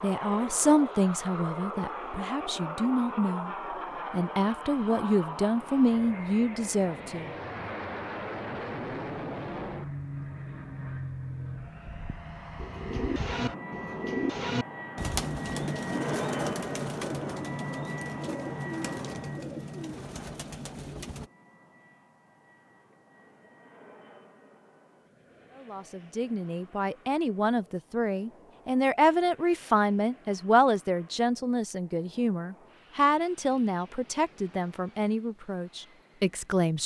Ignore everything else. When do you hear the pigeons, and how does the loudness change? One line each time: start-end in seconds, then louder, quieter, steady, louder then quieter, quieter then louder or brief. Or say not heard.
12.6-21.3 quieter.